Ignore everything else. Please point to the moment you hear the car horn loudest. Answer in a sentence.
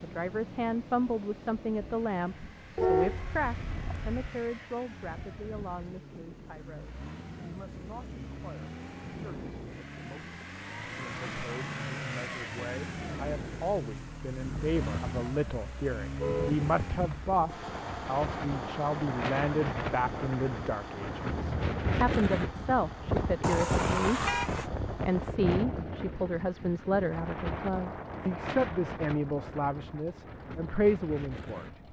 The loudest moment of the car horn is at 3 seconds.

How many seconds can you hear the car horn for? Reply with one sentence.
You can hear the car horn for 3 seconds altogether.